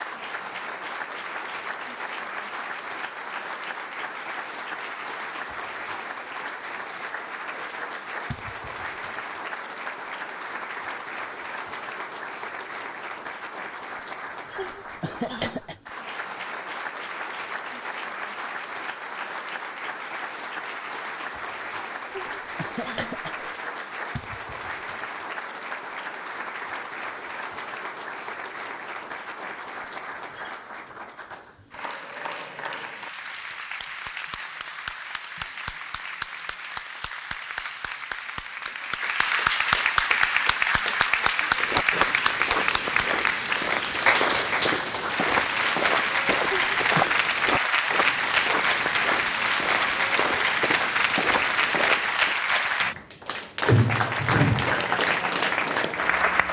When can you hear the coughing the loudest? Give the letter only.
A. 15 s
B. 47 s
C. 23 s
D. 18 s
A.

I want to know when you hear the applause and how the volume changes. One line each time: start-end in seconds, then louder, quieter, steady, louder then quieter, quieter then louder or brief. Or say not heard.
0.0-56.4 louder.